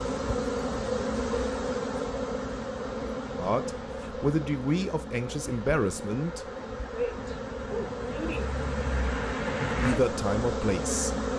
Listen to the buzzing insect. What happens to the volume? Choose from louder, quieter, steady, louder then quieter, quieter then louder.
quieter then louder.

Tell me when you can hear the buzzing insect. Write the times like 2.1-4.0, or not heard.
0.0-11.3.